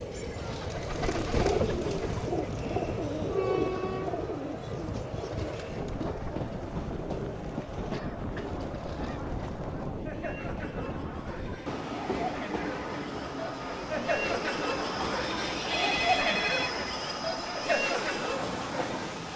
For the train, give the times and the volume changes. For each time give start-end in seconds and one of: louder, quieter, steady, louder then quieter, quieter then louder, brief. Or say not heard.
0.0-19.3 steady.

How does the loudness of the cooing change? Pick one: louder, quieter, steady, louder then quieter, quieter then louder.
quieter.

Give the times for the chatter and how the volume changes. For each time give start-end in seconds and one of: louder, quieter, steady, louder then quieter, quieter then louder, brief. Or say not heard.
0.2-19.3 louder.